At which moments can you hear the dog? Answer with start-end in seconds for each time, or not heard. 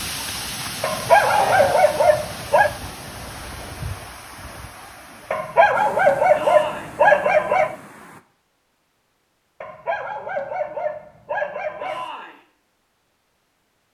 0.8-2.7, 5.3-7.8, 9.6-12.1.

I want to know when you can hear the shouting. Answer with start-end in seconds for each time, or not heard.
1.1-1.9, 6.3-7.0, 11.8-12.4.